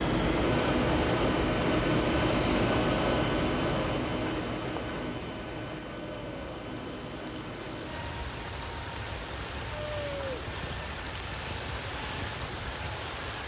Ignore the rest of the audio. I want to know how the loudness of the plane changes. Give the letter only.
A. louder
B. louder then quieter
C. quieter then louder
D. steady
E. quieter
E.